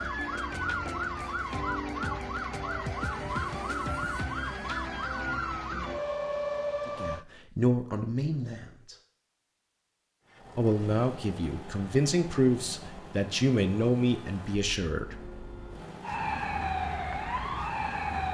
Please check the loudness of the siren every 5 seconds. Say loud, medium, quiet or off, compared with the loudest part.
loud, loud, off, loud.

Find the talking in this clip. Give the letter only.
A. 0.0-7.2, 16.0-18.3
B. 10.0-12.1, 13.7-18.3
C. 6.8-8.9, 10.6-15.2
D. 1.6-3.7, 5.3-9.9
C.